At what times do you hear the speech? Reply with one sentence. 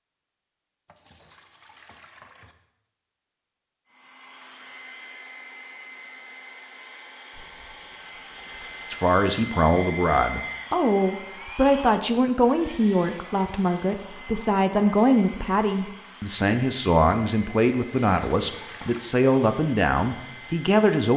The speech can be heard from 8.9 to 21.1 s.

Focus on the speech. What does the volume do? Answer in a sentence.
The volume of the speech stays about the same.